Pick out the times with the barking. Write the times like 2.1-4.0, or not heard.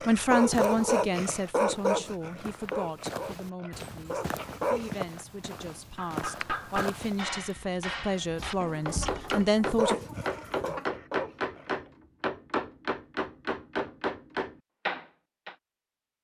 0.0-5.0, 9.6-11.8.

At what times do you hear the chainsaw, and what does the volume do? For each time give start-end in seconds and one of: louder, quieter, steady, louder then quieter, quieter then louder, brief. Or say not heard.
not heard.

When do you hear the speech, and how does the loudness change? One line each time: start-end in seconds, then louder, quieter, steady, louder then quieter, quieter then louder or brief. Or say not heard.
0.1-10.0 quieter then louder.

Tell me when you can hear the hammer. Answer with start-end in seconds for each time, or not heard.
6.0-15.6.